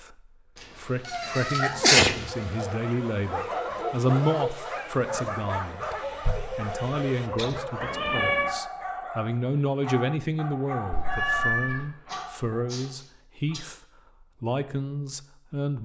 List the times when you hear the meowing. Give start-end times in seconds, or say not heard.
0.6-2.7, 7.8-8.6, 10.9-11.9.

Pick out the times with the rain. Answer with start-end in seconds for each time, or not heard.
not heard.